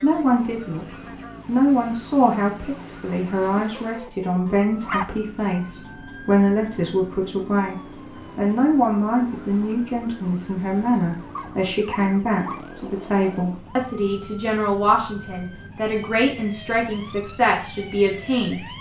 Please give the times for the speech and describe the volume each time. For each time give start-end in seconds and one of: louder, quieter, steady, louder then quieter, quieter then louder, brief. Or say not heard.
0.0-18.6 steady.